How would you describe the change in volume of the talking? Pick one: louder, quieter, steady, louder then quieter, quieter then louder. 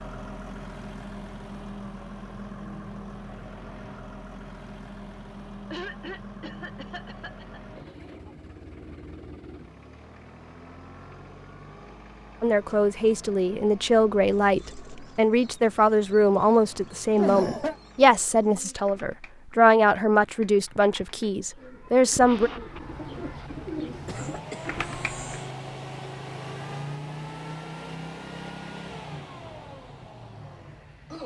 steady.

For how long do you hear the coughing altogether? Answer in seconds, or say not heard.
4 s.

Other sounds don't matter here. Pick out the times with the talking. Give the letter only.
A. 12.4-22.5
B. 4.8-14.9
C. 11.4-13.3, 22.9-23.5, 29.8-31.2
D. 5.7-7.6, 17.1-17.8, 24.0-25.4
A.